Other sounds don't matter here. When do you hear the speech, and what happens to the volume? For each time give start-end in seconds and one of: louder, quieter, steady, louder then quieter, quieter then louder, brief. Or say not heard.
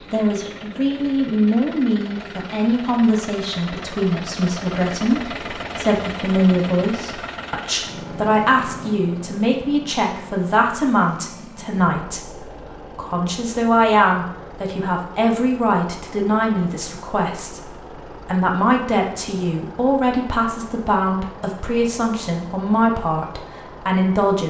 0.1-24.4 steady.